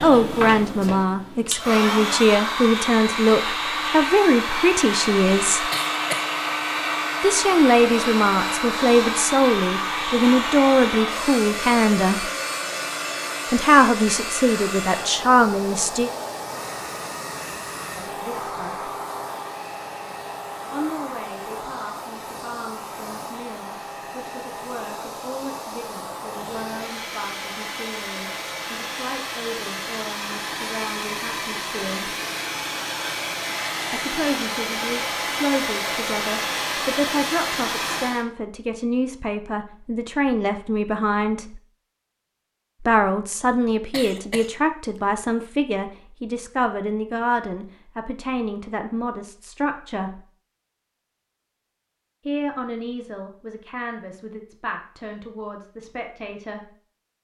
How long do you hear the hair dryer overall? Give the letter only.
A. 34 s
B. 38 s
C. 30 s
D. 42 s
B.